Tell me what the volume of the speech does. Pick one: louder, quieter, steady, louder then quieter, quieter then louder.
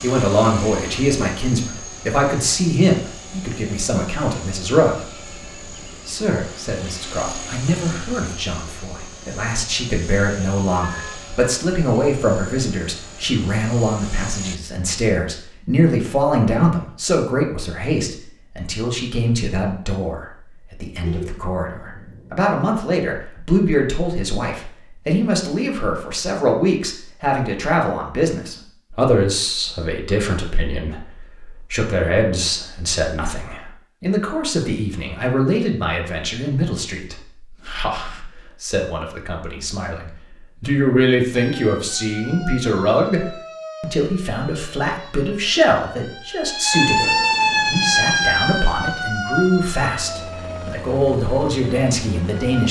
steady.